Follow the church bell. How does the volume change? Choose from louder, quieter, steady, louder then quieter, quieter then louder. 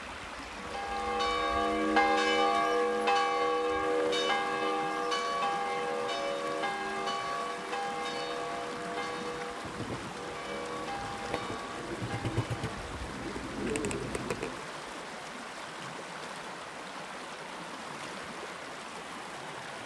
quieter.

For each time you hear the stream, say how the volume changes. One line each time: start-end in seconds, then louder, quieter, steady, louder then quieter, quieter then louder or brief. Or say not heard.
0.0-19.8 steady.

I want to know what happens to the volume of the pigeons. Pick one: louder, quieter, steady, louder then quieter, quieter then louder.
quieter then louder.